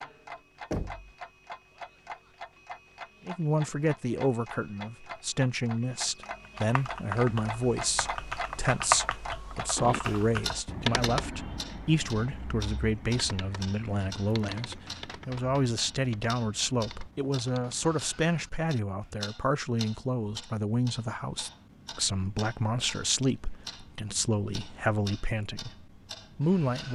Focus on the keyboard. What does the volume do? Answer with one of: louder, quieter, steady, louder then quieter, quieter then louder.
louder then quieter.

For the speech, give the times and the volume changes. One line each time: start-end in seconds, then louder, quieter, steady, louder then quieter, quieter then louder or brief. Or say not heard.
3.2-26.9 steady.